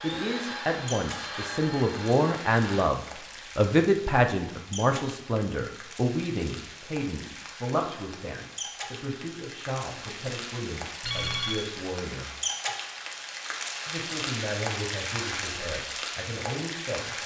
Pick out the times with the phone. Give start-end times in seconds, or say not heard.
11.0-11.7.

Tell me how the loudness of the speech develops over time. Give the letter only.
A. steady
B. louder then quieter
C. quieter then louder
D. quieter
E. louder
D.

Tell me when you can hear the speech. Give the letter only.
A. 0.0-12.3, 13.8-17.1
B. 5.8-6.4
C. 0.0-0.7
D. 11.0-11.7
A.